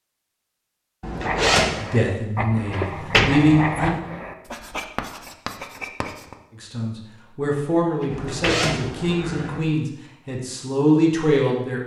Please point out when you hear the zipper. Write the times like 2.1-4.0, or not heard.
1.0-1.8, 8.1-9.6.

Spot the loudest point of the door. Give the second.
3 s.